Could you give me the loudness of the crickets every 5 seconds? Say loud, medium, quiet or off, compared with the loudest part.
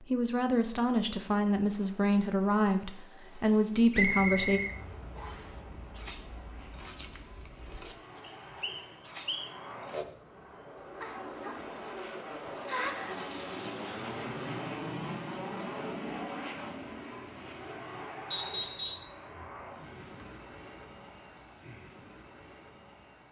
off, loud, loud, quiet, quiet.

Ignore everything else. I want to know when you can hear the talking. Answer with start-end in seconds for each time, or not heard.
0.0-4.6.